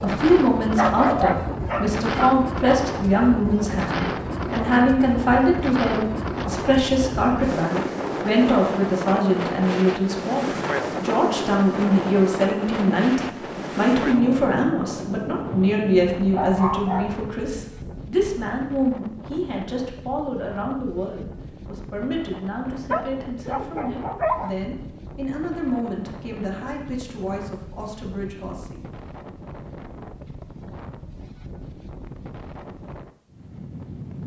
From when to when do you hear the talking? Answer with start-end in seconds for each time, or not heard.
0.0-28.9.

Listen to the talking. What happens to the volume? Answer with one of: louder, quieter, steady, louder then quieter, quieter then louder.
quieter.